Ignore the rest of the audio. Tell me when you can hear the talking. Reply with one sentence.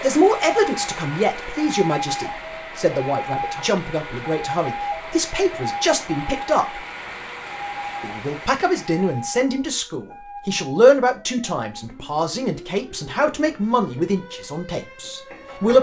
You can hear the talking from 0.0 to 6.8 s and from 8.0 to 15.7 s.